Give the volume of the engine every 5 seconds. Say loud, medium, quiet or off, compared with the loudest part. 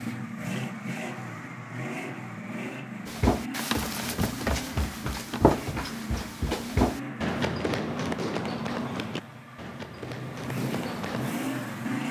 loud, medium, loud.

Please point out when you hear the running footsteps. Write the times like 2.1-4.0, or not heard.
3.0-11.3.